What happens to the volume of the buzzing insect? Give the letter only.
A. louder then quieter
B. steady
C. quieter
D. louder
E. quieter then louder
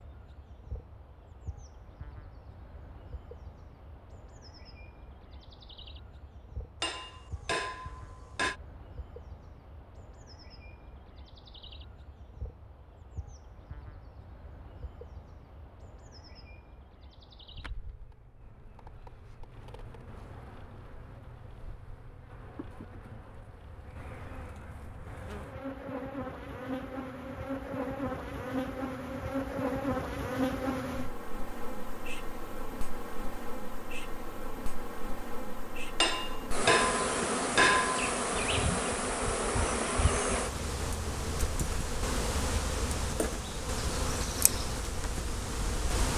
D.